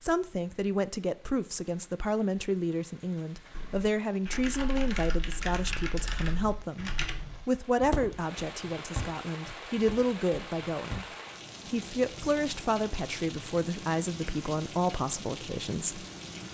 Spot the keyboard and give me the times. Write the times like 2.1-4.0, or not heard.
3.5-11.0.